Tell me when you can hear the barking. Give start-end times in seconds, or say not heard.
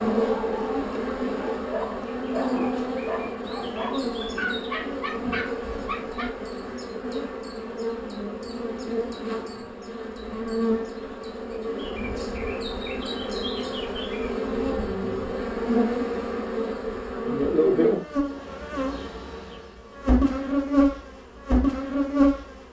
0.0-6.3.